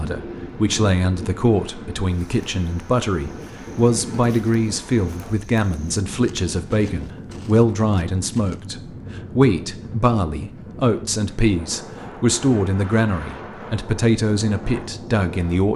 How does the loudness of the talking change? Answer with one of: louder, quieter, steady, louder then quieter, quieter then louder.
steady.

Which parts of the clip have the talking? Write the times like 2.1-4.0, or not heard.
0.0-15.7.